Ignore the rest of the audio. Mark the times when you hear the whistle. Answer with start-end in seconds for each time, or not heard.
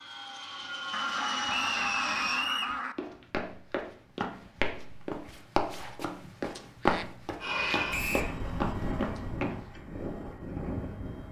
1.4-2.8, 7.9-8.3.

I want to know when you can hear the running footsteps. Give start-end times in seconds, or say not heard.
3.0-9.7.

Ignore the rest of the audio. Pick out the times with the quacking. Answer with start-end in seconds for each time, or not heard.
0.9-3.0, 6.2-7.8.